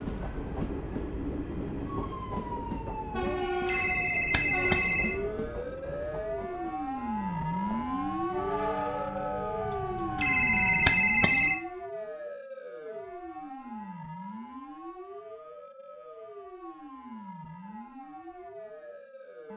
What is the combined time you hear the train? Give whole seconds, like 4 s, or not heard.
11 s.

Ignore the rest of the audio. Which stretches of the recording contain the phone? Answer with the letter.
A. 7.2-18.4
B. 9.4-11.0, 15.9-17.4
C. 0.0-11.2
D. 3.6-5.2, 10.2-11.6
D.